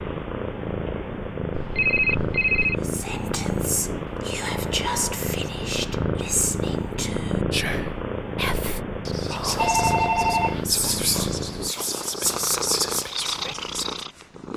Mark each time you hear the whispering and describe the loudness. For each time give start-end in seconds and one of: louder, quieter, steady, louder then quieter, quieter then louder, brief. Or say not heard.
2.8-14.1 steady.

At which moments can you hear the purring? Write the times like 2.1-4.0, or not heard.
0.0-14.5.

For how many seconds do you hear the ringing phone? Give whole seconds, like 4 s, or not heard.
2 s.